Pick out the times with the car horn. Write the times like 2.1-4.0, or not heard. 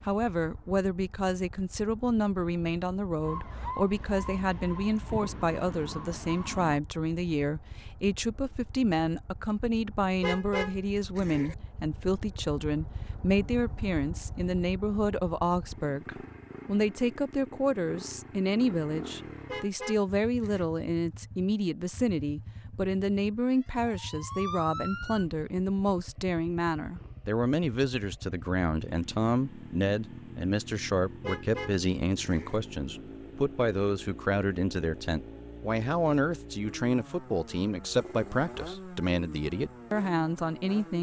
10.2-11.6, 19.4-20.6, 31.2-32.6.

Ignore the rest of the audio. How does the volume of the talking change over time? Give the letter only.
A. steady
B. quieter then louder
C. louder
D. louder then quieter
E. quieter
A.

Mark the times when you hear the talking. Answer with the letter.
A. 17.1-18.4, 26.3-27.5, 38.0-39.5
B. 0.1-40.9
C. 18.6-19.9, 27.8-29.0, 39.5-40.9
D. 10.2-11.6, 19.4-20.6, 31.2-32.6
B.